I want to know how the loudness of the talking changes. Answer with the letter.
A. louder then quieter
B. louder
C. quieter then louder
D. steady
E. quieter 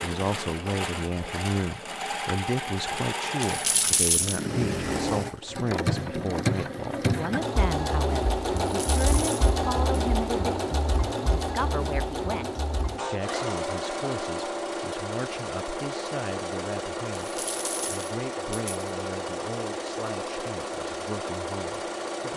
E.